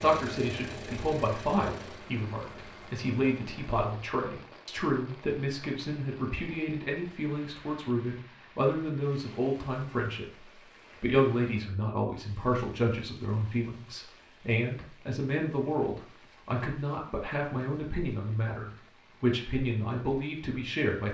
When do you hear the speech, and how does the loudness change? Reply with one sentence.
The speech can be heard from 0.0 to 21.0 s, at a steady volume.